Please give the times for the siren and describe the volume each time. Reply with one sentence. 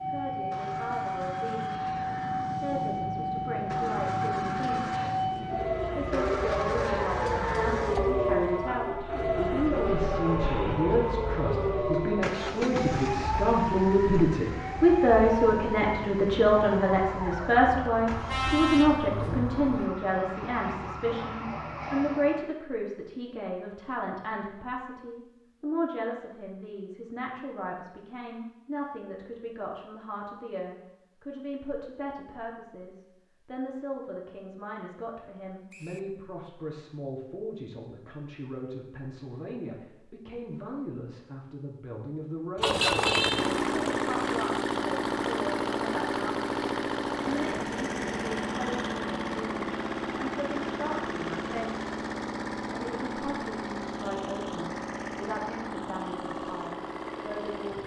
You can hear the siren from 0.0 to 22.4 s, getting quieter.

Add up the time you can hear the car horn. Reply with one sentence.
You can hear the car horn for 3 seconds altogether.